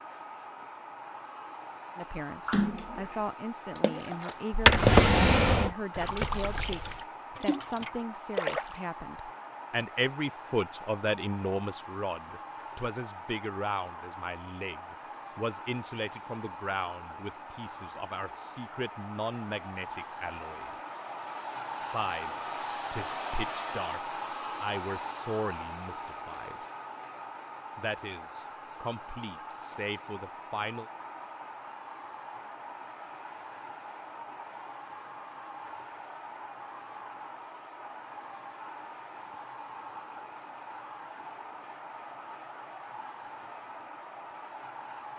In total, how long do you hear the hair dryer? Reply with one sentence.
You can hear the hair dryer for 45 seconds altogether.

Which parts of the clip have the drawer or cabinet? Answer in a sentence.
The drawer or cabinet can be heard from 4.5 to 5.7 s.